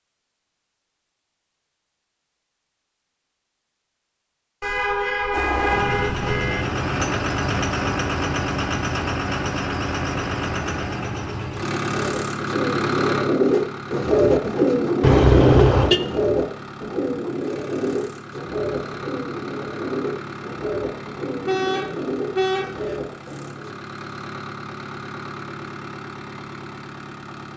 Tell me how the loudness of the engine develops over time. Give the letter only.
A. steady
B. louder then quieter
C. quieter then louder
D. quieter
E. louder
D.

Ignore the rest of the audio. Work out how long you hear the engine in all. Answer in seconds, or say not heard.
22 s.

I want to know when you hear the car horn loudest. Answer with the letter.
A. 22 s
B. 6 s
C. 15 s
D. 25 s
C.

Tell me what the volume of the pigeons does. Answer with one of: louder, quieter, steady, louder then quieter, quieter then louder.
quieter.